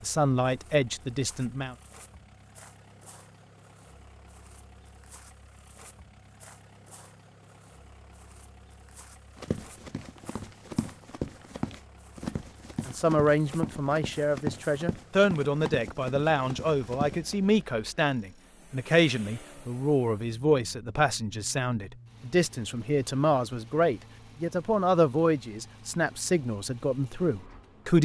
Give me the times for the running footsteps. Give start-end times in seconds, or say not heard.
9.3-17.4.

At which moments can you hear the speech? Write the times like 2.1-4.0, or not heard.
0.0-1.8, 12.8-27.9.